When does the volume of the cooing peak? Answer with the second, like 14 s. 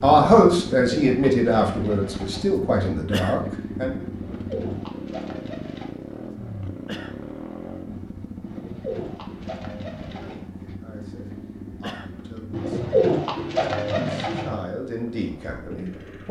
13 s.